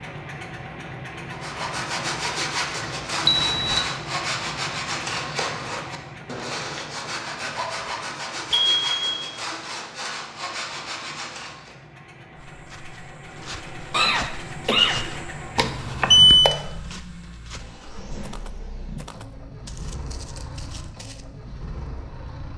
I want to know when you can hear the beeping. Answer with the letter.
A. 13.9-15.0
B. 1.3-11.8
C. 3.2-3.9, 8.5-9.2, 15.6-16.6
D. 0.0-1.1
C.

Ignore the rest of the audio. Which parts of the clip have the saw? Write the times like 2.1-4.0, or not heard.
1.3-11.8.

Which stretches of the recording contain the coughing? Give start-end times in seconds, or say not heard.
13.9-15.0.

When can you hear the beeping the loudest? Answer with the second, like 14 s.
16 s.